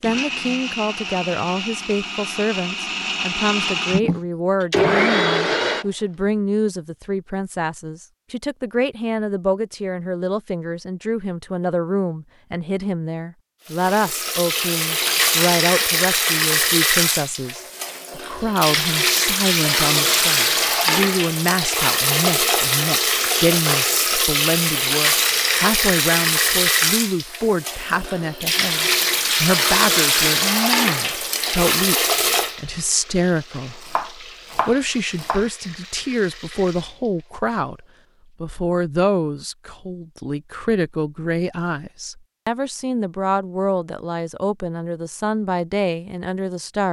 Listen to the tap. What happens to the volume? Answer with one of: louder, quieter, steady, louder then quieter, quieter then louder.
quieter.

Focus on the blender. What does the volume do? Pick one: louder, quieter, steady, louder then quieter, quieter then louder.
louder.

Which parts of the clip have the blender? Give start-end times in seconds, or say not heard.
0.0-5.8.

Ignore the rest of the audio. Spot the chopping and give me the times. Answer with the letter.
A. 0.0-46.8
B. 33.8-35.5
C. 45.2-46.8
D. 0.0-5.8
B.